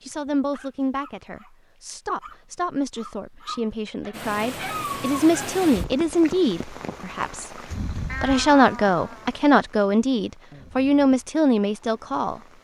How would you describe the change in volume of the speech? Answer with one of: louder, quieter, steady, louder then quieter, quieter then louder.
louder.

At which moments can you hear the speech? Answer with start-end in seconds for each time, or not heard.
0.0-7.5, 8.2-12.4.